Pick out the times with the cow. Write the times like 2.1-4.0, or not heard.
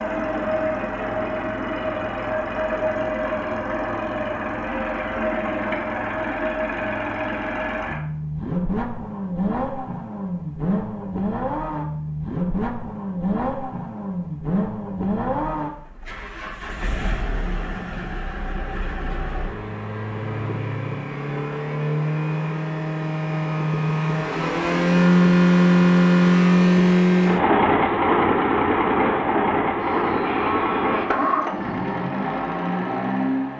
29.8-31.1.